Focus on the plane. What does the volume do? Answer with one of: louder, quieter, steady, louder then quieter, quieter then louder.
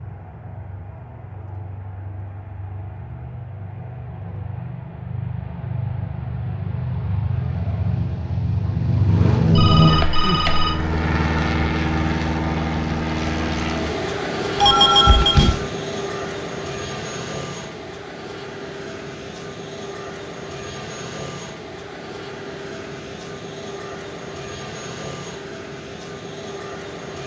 louder then quieter.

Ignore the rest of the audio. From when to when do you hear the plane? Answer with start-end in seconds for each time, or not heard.
0.0-27.2.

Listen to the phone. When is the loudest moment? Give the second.
15 s.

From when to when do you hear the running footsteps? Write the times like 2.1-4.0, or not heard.
not heard.